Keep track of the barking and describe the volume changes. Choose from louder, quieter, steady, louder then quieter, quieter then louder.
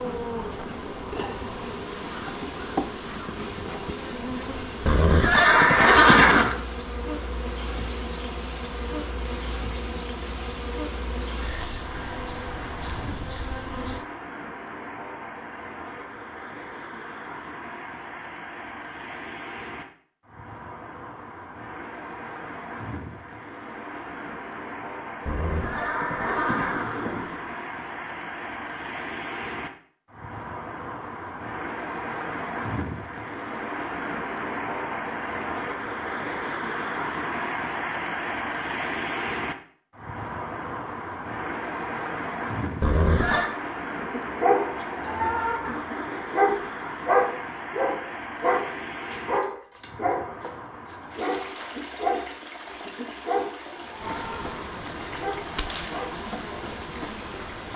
quieter.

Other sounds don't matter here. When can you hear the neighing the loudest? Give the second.
6 s.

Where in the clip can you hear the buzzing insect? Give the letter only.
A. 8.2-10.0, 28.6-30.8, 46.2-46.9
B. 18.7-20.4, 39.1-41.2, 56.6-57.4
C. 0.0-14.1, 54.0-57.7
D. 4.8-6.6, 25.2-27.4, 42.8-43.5
C.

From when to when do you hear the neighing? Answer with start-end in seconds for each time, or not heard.
4.8-6.6, 25.2-27.4, 42.8-43.5.